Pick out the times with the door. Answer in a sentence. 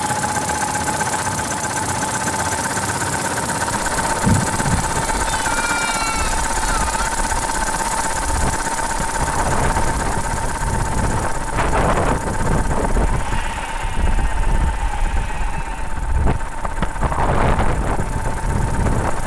The door can't be heard in this clip.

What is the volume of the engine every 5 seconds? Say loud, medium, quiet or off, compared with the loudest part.
loud, loud, medium, medium.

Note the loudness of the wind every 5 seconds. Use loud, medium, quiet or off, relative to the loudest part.
medium, loud, loud, loud.